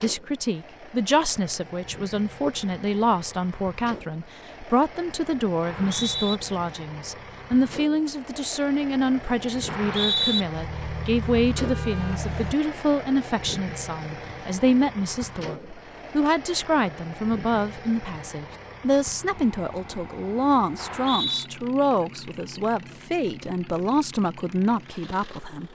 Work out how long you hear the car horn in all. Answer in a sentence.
You can hear the car horn for 2 seconds altogether.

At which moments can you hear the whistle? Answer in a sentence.
The whistle can be heard from 5.6 to 6.4 s, from 9.7 to 10.4 s and from 20.8 to 21.5 s.